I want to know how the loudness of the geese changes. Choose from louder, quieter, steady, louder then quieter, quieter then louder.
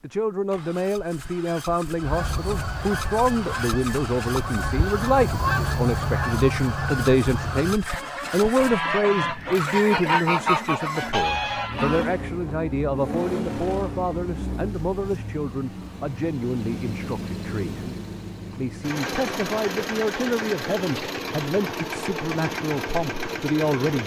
louder.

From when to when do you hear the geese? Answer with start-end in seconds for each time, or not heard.
2.0-12.2.